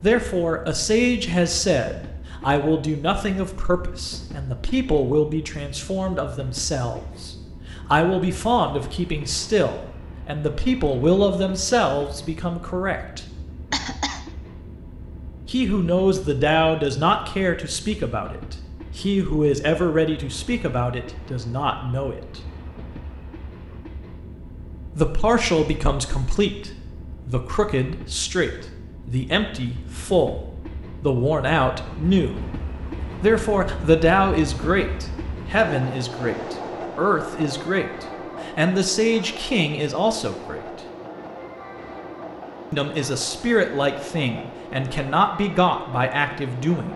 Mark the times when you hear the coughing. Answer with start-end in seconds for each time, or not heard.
13.7-14.3.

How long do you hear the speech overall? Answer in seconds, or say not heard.
39 s.